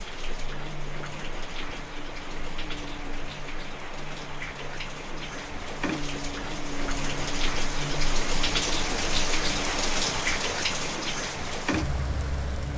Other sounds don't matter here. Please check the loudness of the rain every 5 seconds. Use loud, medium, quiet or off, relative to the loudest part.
medium, loud, loud.